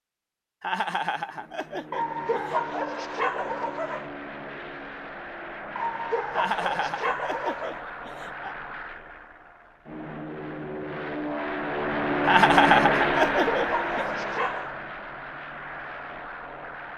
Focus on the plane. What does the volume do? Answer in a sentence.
The volume of the plane goes up, then down.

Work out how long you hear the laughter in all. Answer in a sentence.
You can hear the laughter for 6 seconds altogether.